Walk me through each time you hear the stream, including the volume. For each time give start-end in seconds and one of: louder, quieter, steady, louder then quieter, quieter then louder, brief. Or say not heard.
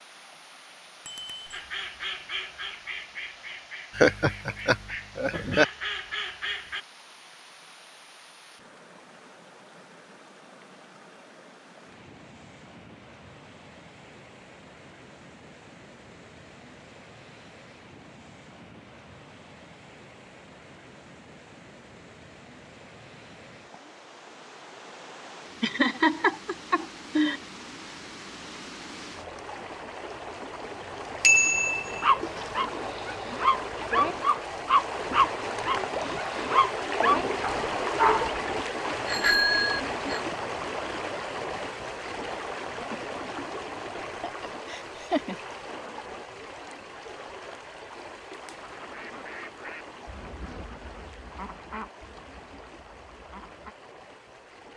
0.0-54.7 louder then quieter.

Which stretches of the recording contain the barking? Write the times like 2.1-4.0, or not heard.
32.0-38.4.